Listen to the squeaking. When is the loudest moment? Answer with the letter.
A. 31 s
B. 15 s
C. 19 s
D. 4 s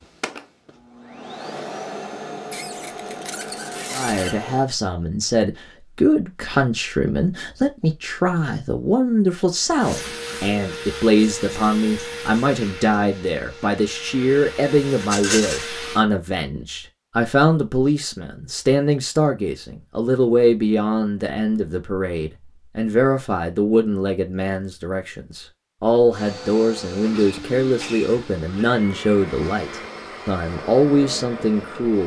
D.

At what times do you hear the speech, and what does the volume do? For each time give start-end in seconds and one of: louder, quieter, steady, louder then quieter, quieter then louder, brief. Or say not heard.
3.9-32.0 steady.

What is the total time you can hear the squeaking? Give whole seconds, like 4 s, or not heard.
2 s.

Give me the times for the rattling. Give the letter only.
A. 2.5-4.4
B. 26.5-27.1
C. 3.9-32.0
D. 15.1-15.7
D.